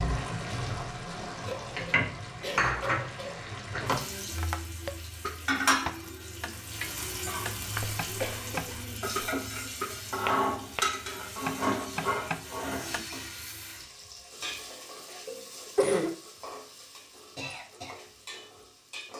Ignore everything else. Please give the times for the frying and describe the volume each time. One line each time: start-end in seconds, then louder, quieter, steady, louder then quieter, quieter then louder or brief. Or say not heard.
0.0-19.1 quieter.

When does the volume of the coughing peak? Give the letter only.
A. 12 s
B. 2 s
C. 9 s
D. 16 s
D.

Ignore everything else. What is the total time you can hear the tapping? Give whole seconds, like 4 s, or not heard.
9 s.